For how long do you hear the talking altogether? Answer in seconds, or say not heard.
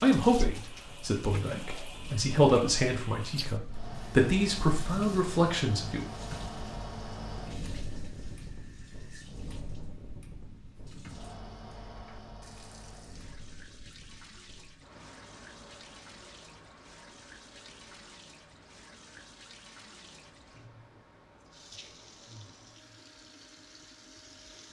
6 s.